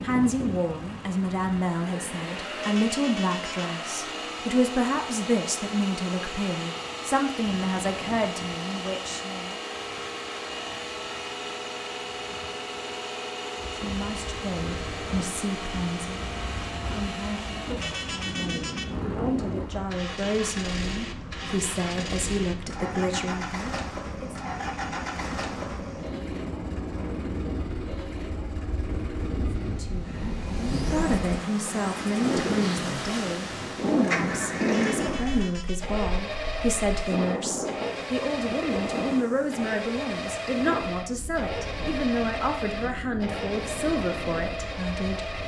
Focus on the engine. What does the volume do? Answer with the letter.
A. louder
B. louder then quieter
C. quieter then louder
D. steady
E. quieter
D.